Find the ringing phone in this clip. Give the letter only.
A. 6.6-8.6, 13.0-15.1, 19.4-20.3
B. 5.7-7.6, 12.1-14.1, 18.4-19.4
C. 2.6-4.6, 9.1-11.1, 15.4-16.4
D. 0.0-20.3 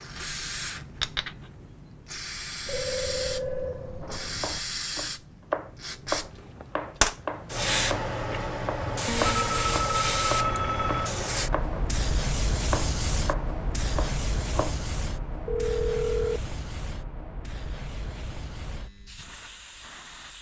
C.